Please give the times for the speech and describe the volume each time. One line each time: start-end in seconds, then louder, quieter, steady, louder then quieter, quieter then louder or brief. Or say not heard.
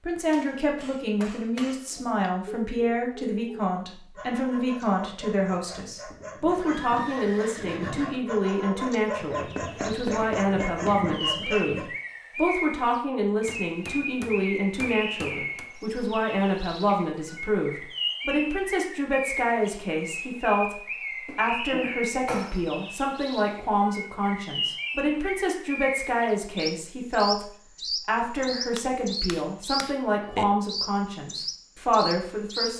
0.0-32.7 steady.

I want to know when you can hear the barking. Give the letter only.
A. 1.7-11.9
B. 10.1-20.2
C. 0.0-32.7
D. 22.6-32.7
A.